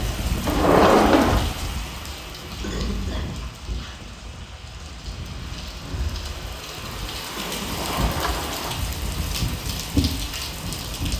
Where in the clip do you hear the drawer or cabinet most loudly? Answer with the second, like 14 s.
1 s.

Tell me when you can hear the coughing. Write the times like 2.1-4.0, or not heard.
2.6-3.4, 7.3-7.8.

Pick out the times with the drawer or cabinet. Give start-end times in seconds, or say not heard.
0.5-1.4, 7.7-8.8.